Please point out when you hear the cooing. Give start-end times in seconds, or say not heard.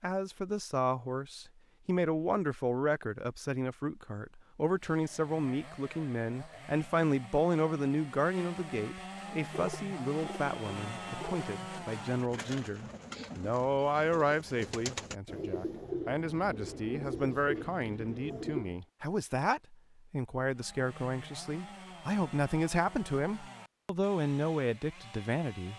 9.3-18.8.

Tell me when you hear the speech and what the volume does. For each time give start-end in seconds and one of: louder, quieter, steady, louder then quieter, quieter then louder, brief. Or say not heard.
0.0-25.7 steady.